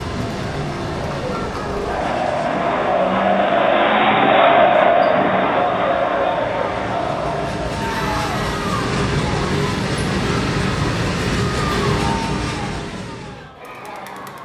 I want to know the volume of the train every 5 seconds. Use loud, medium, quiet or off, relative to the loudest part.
medium, loud, loud.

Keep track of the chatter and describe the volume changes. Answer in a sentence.
The loudness of the chatter goes up, then down.